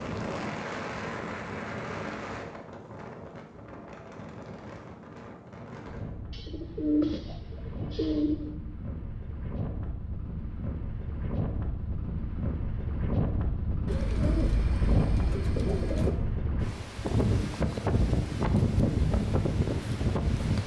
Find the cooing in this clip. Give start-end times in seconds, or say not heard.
6.3-8.5, 13.8-16.2.